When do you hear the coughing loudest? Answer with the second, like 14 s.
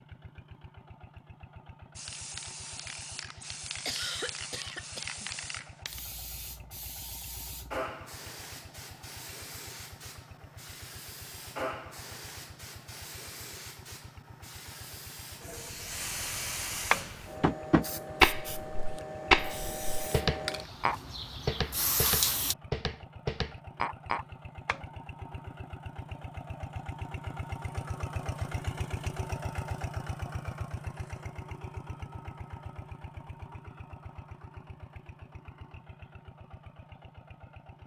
4 s.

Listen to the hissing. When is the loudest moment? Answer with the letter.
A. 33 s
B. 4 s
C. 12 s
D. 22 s
D.